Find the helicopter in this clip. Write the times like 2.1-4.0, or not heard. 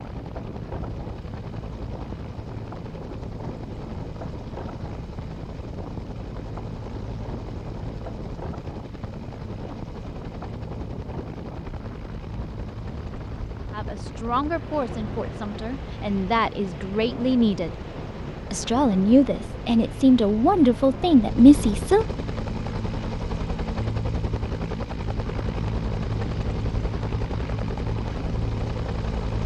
0.0-29.4.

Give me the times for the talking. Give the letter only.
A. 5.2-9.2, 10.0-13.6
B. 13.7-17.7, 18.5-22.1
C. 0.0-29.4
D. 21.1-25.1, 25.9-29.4
B.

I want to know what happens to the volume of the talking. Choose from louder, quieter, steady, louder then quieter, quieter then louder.
louder.